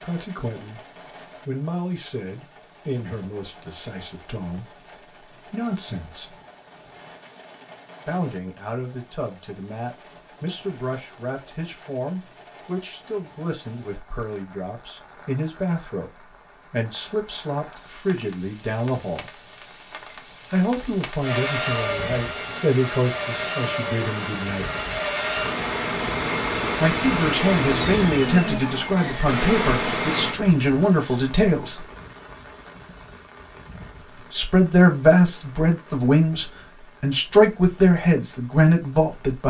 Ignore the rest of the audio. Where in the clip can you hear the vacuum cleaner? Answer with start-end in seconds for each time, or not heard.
21.2-30.4.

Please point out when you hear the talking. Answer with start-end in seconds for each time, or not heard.
0.0-0.8, 1.4-6.3, 8.1-19.2, 20.5-24.6, 26.8-31.9, 34.1-39.4.